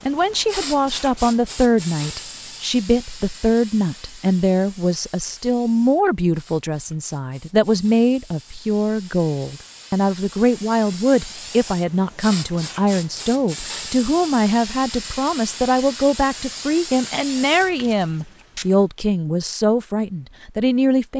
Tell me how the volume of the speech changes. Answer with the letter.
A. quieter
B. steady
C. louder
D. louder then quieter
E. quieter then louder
B.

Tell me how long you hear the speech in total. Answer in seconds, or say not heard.
21 s.